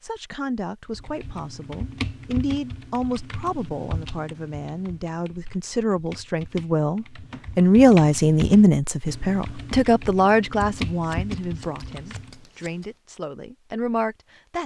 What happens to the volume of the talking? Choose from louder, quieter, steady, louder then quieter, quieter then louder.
louder then quieter.